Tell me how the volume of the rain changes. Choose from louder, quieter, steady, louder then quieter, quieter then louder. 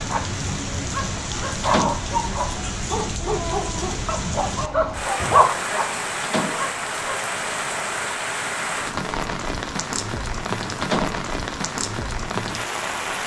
steady.